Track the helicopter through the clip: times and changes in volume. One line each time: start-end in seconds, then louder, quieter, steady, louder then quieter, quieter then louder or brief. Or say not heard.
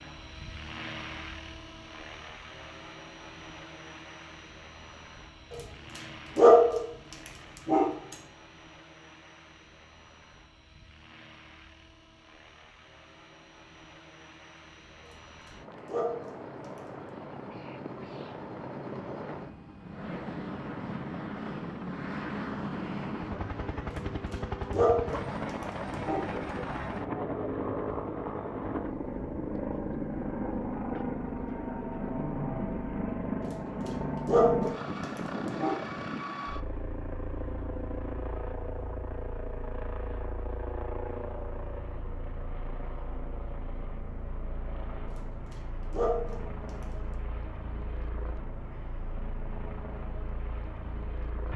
0.0-51.5 louder then quieter.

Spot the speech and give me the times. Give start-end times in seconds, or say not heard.
not heard.